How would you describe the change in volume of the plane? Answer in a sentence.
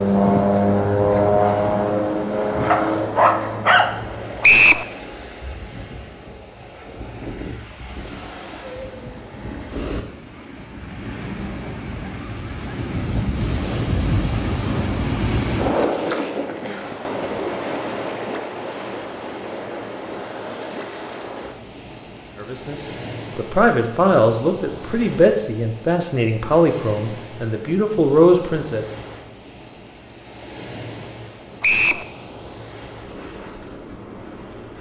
The loudness of the plane goes down.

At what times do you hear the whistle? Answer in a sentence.
You can hear the whistle from 4.4 to 4.8 s and from 31.6 to 32.0 s.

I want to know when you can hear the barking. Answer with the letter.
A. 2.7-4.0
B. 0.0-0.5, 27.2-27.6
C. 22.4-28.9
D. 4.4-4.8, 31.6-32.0
A.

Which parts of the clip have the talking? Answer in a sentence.
The talking can be heard from 22.4 to 28.9 s.